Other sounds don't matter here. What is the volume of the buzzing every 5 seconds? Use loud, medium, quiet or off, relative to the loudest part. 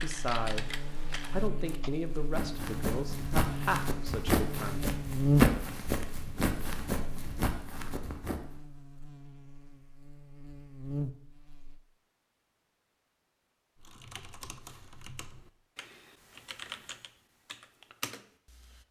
medium, loud, medium, off.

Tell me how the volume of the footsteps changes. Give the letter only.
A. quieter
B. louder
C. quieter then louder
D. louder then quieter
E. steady
D.